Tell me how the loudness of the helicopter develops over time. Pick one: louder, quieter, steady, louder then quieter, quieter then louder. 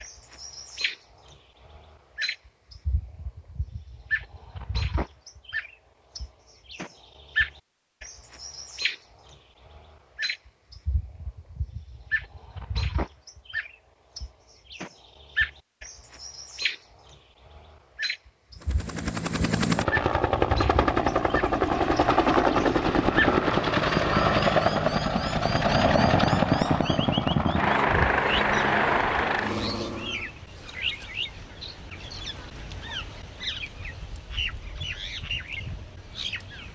steady.